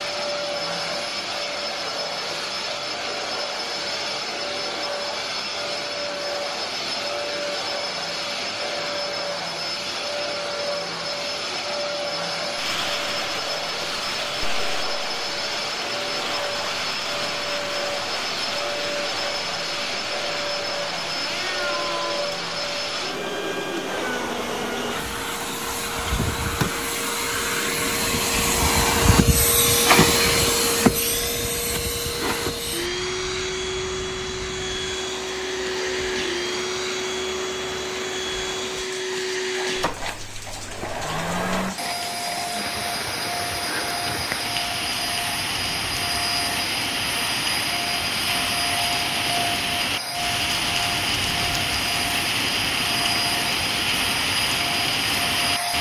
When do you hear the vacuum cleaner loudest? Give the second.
30 s.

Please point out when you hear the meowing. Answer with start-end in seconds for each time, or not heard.
21.1-22.3.